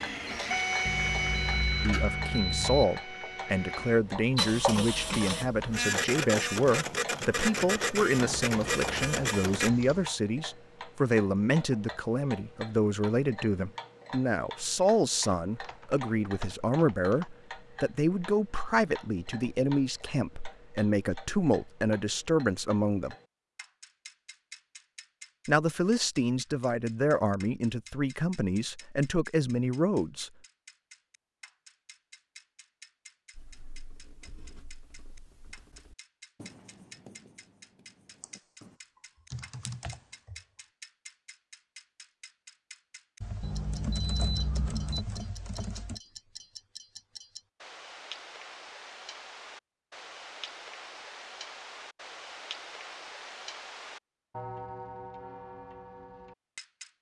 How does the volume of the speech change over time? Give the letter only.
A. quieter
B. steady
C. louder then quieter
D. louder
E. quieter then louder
B.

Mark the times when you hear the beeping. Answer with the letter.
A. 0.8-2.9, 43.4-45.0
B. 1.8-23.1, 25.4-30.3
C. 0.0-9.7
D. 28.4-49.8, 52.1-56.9
A.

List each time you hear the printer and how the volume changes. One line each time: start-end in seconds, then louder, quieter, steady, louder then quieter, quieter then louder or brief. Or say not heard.
0.0-9.7 quieter then louder.